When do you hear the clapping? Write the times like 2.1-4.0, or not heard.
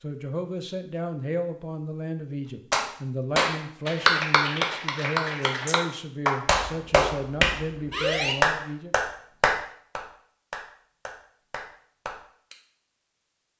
2.7-12.6.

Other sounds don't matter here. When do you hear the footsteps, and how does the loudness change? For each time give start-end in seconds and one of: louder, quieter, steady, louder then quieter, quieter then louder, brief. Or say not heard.
not heard.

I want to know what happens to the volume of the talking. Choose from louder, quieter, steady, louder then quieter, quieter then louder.
steady.